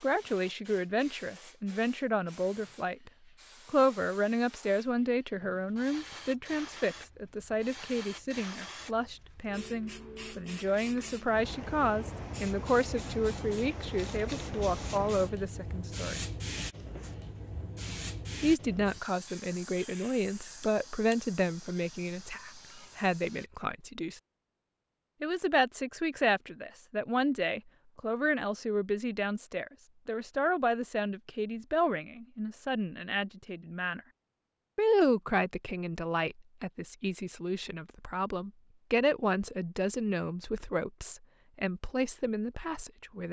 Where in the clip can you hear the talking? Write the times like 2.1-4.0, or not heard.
0.0-16.2, 18.4-24.2, 25.2-34.0, 34.8-43.2.